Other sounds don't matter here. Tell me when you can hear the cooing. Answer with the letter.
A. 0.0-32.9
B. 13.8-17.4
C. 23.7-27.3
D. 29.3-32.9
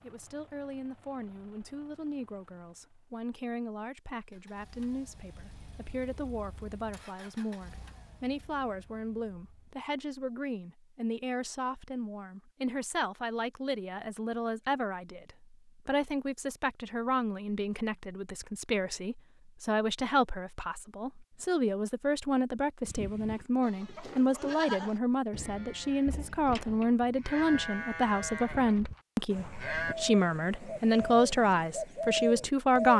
D.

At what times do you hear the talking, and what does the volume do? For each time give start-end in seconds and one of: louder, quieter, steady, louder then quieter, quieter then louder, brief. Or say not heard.
0.0-32.9 louder.